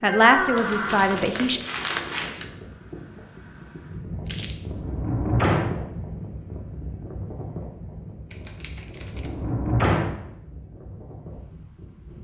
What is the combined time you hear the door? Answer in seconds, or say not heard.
3 s.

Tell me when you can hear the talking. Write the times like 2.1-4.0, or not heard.
0.0-1.6.